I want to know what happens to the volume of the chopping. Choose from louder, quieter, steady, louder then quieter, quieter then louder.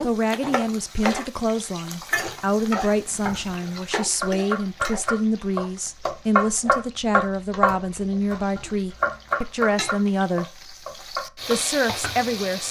louder then quieter.